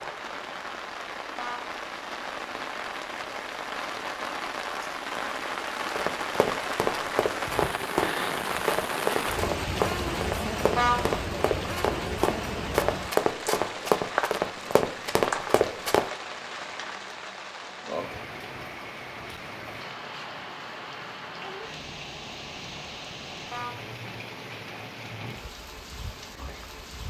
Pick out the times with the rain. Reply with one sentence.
You can hear the rain from 0.0 to 27.0 s.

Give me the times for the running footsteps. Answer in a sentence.
You can hear the running footsteps from 6.0 to 16.1 s.